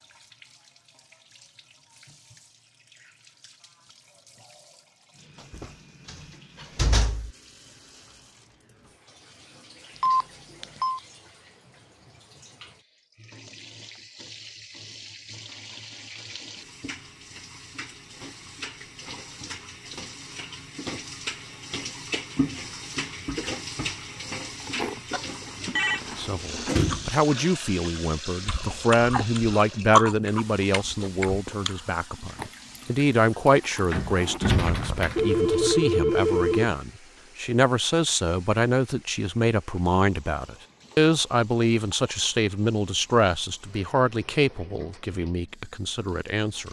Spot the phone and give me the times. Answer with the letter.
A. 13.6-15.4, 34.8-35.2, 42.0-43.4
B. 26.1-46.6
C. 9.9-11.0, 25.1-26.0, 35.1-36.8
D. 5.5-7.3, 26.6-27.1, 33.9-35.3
C.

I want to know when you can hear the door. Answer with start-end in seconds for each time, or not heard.
5.5-7.3, 26.6-27.1, 33.9-35.3.